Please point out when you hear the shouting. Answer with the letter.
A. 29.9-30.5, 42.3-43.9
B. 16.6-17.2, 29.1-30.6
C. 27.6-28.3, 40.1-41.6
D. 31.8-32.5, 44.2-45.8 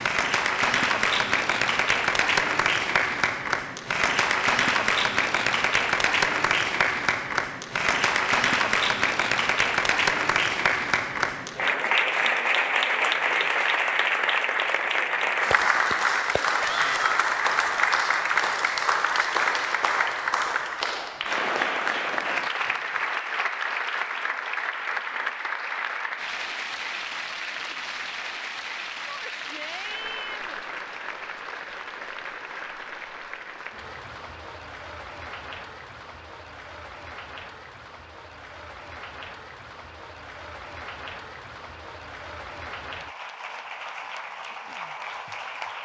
B.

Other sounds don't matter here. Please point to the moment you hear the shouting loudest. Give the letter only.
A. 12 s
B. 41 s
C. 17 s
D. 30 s
C.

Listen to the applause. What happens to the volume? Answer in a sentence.
The volume of the applause goes down.